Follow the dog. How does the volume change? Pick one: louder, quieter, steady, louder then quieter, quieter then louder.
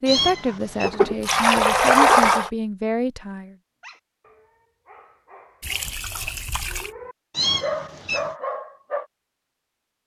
louder.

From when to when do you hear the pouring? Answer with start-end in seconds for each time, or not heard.
0.8-2.5, 5.6-6.9.